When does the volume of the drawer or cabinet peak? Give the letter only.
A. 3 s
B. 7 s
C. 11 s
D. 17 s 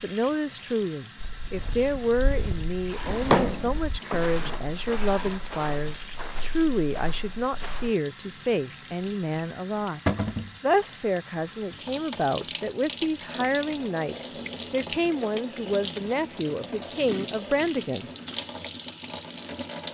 A.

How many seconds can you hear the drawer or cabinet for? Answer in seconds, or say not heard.
3 s.